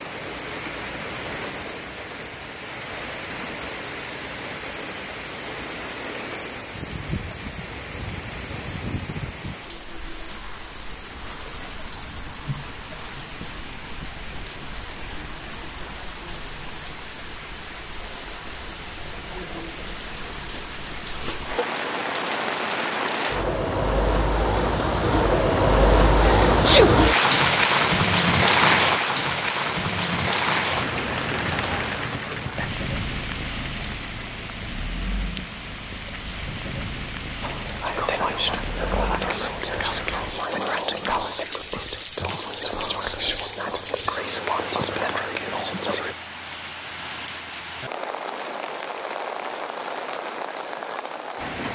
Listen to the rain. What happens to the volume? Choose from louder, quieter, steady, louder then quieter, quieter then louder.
louder then quieter.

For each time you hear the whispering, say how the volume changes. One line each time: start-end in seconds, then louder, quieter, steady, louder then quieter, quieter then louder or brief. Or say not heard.
37.4-46.1 steady.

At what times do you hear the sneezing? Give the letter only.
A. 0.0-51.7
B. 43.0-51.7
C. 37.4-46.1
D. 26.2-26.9
D.